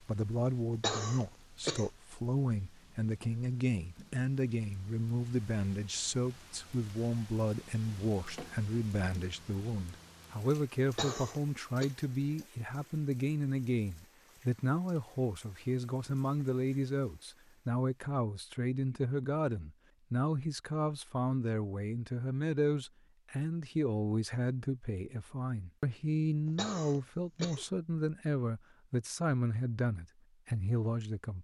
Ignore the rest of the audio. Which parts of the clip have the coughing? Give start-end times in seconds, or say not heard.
0.8-1.9, 10.8-11.9, 26.4-27.6.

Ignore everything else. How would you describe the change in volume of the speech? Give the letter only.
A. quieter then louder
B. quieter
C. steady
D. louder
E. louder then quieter
C.